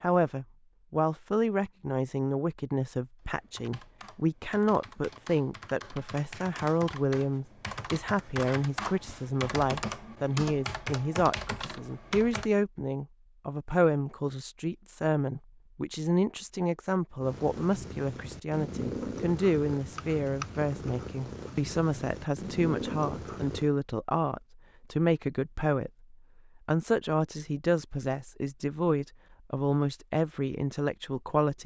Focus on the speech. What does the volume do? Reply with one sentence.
The volume of the speech stays about the same.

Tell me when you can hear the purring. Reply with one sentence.
You can hear the purring from 17.2 to 23.7 s.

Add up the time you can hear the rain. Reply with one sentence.
The rain can't be heard in this clip.